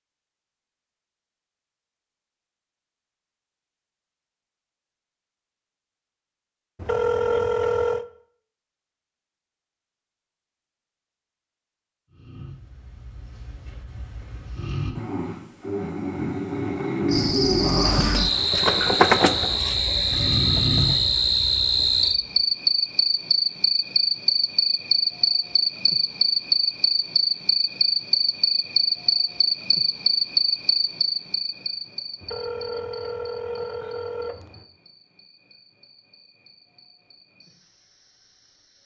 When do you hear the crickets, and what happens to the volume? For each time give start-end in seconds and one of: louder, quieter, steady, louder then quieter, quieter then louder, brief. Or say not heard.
17.1-38.8 quieter.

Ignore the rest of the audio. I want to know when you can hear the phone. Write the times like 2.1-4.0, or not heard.
6.8-8.1, 32.2-34.6.